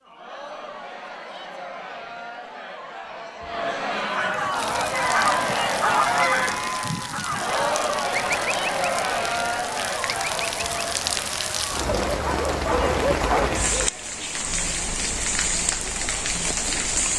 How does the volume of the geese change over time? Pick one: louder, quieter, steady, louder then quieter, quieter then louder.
quieter.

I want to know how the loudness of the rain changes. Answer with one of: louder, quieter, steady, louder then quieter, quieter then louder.
louder.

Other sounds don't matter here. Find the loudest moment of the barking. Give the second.
13 s.